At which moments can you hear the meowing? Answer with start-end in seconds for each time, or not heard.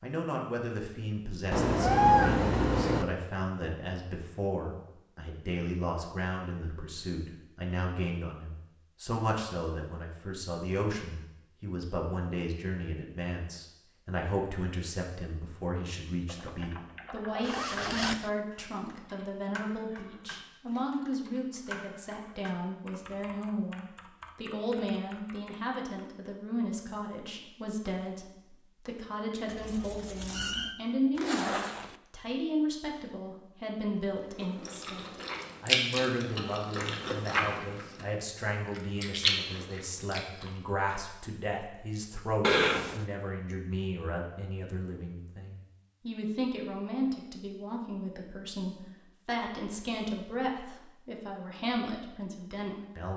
1.5-3.0, 29.4-30.8, 42.4-43.0.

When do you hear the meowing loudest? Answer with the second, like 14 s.
2 s.